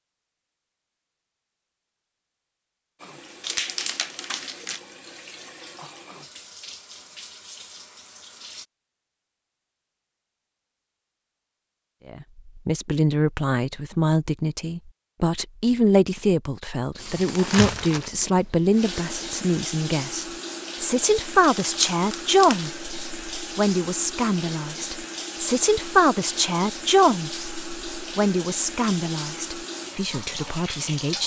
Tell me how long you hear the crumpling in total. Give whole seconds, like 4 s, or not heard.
3 s.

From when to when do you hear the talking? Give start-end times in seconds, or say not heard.
12.1-31.2.